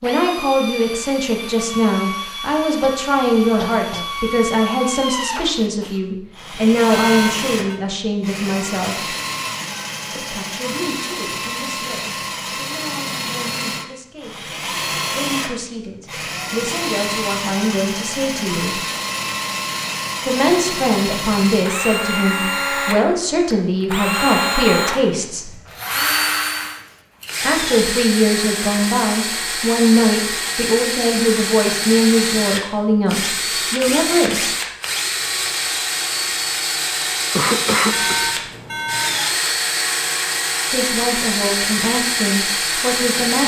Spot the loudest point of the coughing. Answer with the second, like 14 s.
38 s.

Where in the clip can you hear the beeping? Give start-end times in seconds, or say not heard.
6.9-7.8, 37.9-39.2.